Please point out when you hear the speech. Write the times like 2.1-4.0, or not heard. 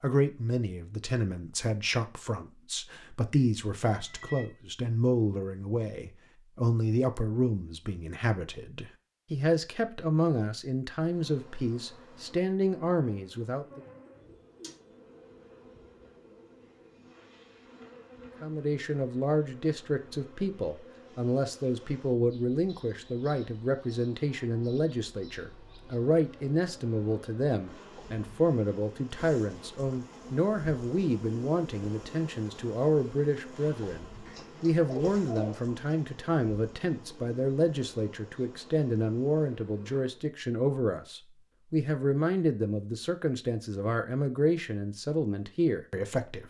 0.0-13.8, 18.4-46.4.